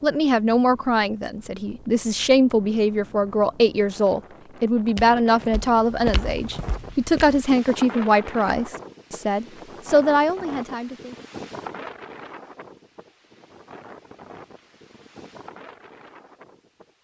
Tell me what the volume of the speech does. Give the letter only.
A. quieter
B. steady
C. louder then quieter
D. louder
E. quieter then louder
B.